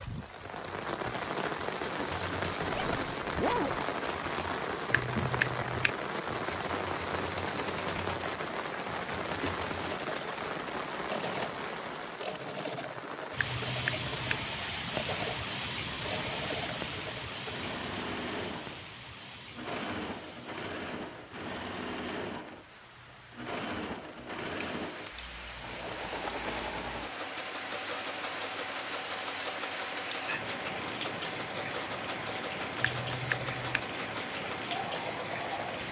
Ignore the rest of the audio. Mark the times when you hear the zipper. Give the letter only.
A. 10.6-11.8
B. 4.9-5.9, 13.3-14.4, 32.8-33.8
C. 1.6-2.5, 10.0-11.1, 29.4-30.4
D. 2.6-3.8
D.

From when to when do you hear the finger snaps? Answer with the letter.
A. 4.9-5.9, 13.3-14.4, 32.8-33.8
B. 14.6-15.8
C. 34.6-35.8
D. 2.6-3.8
A.